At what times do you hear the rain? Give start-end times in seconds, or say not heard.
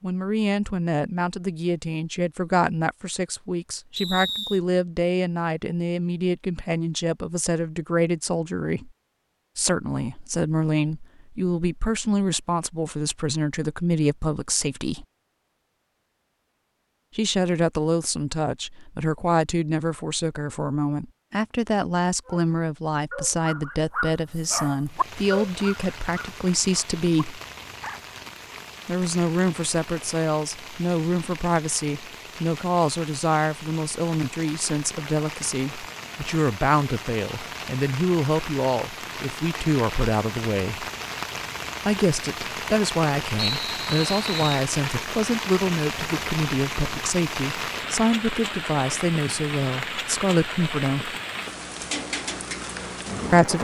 24.9-53.6.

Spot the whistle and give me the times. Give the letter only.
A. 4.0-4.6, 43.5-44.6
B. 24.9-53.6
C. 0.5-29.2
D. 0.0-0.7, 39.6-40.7
A.